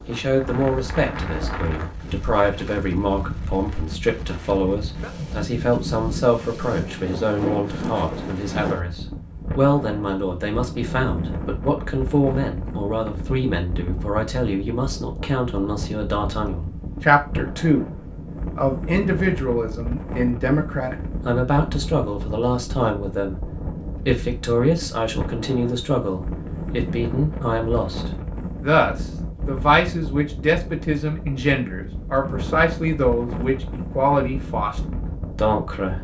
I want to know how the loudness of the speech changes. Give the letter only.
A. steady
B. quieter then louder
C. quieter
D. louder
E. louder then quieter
A.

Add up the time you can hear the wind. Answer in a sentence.
You can hear the wind for 36 seconds altogether.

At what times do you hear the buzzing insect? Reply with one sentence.
The buzzing insect can't be heard in this clip.